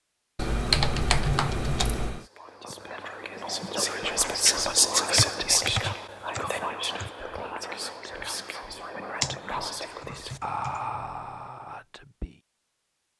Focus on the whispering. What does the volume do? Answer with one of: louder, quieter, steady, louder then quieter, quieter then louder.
louder then quieter.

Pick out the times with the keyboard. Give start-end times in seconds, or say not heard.
0.3-2.2, 5.2-7.1, 9.2-10.8.